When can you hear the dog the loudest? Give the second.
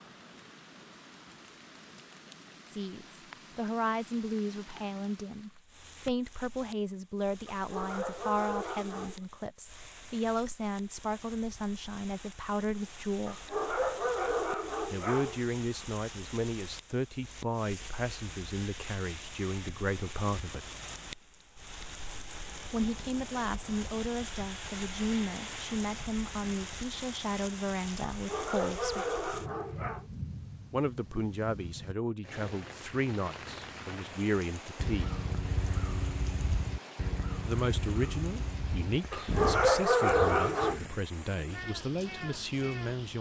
40 s.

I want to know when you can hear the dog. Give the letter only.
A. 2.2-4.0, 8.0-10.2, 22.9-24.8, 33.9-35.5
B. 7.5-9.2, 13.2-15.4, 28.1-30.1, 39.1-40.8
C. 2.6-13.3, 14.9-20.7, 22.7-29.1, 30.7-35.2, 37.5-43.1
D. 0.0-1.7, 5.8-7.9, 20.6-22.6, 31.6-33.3
B.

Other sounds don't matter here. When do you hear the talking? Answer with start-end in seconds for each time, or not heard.
2.6-13.3, 14.9-20.7, 22.7-29.1, 30.7-35.2, 37.5-43.1.